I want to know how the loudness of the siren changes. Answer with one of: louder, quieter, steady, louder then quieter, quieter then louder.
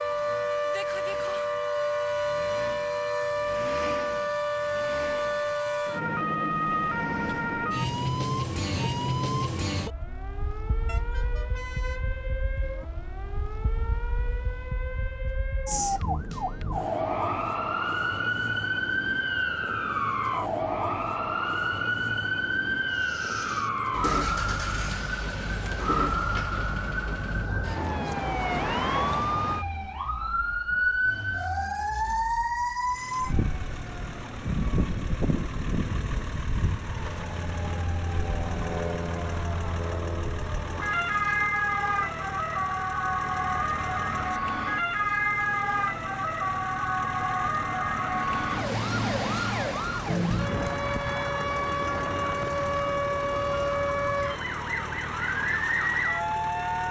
steady.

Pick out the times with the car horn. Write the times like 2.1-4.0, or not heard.
10.8-12.1.